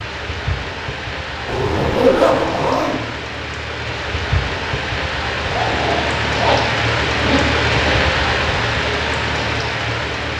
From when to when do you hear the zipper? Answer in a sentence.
The zipper can be heard from 1.4 to 3.0 s and from 5.5 to 8.0 s.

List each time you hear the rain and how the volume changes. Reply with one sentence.
The rain can be heard from 0.0 to 10.3 s, getting louder.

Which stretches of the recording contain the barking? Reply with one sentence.
The barking can't be heard in this clip.